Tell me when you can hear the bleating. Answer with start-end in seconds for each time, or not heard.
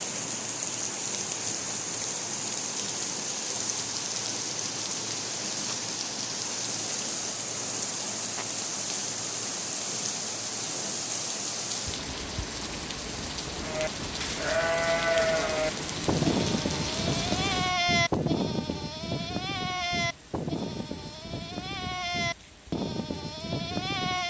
13.6-24.2.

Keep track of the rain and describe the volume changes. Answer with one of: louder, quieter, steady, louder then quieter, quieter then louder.
quieter.